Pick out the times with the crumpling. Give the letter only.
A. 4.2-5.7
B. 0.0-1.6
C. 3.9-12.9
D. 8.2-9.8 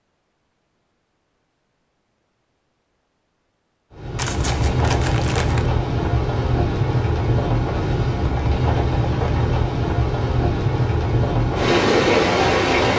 A.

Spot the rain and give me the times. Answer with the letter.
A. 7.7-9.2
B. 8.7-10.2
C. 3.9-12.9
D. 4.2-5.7
C.